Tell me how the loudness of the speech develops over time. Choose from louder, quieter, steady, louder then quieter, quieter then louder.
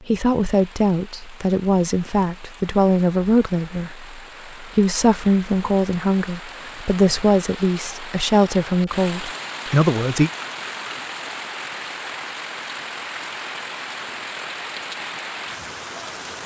steady.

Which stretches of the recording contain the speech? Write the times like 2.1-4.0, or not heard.
0.1-10.3.